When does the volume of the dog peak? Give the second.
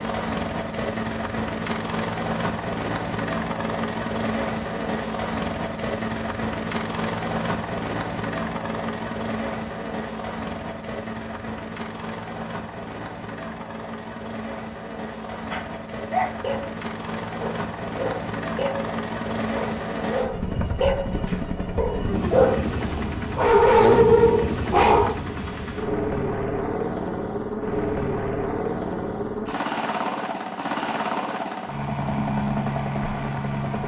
24 s.